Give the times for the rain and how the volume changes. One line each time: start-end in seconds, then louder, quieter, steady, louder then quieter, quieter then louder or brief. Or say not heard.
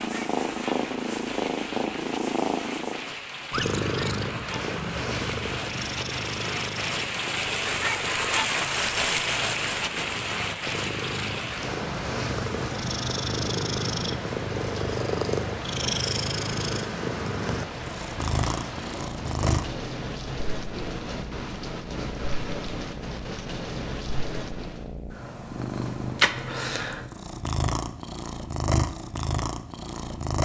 0.0-24.9 louder then quieter.